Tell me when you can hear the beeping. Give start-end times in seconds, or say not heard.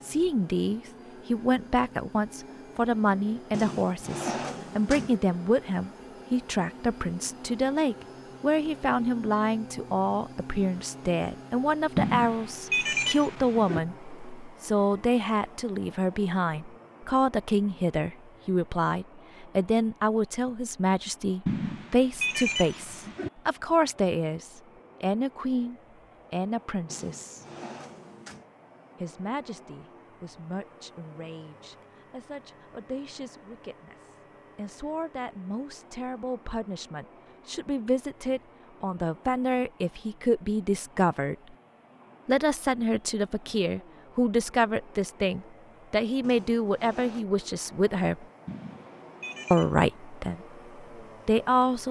11.9-13.8, 21.4-23.3, 48.5-49.8.